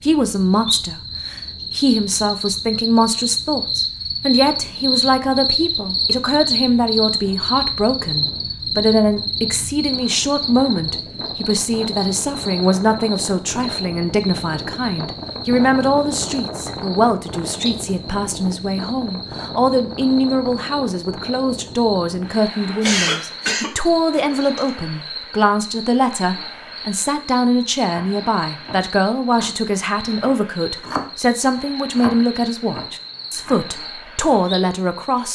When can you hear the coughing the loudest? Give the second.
23 s.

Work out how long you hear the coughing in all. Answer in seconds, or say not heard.
2 s.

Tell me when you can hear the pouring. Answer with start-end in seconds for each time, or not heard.
not heard.